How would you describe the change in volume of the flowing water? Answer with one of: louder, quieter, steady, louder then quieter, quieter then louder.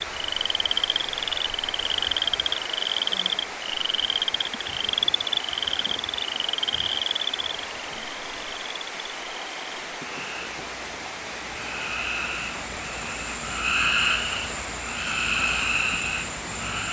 steady.